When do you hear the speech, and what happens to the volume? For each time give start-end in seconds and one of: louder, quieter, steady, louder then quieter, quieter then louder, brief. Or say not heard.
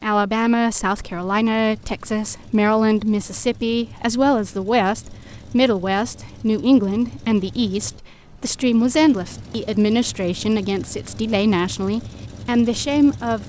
0.0-13.4 steady.